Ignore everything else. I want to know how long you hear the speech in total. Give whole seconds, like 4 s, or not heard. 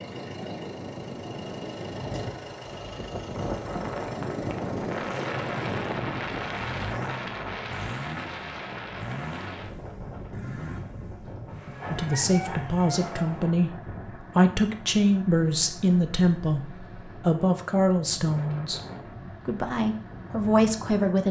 9 s.